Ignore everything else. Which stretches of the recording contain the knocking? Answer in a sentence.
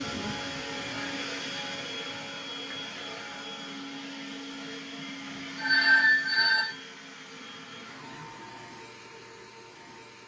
You can't hear the knocking here.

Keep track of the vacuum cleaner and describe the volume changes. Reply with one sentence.
The loudness of the vacuum cleaner goes down.